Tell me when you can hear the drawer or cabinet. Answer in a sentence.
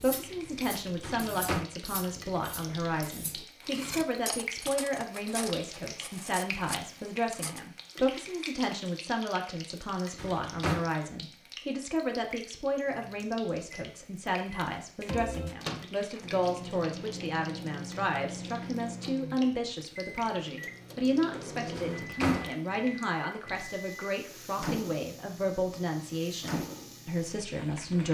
You can hear the drawer or cabinet from 1.0 to 1.6 s, from 10.2 to 10.8 s and from 21.8 to 22.6 s.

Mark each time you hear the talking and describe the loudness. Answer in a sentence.
You can hear the talking from 0.0 to 28.0 s, at a steady volume.